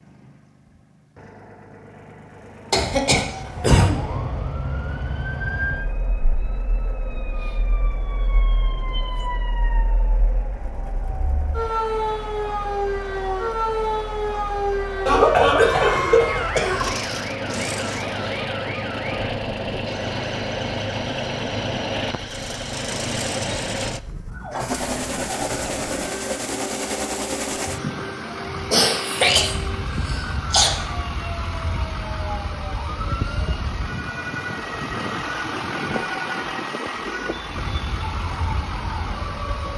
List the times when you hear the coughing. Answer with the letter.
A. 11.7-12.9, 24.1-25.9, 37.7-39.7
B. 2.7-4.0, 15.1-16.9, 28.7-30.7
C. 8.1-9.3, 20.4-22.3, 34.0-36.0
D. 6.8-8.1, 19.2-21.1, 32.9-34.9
B.